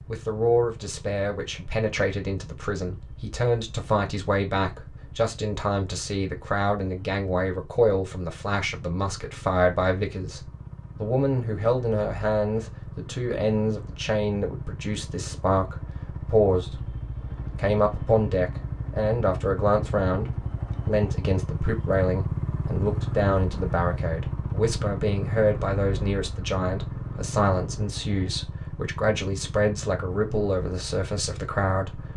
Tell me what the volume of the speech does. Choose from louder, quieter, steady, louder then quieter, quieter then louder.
steady.